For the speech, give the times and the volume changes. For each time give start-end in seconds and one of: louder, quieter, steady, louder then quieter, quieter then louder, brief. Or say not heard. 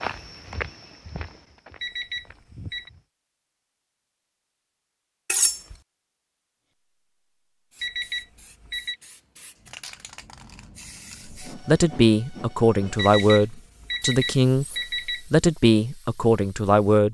11.4-17.0 steady.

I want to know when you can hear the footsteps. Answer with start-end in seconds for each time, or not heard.
0.0-3.0.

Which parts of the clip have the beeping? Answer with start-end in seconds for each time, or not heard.
1.8-2.9, 7.8-8.9, 12.9-15.2.